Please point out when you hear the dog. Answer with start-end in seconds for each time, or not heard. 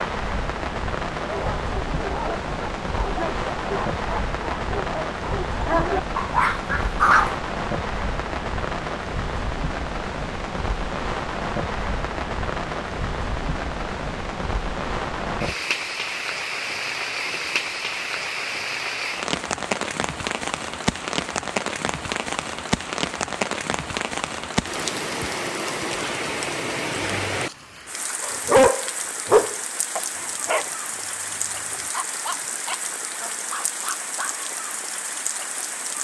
1.2-7.3, 28.2-34.4.